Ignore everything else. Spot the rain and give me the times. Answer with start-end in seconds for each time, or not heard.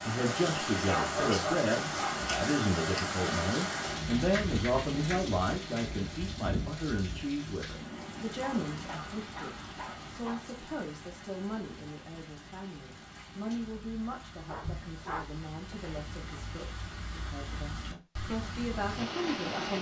0.0-19.7.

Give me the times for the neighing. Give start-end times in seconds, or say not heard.
not heard.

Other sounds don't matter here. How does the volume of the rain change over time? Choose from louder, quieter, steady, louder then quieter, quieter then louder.
quieter then louder.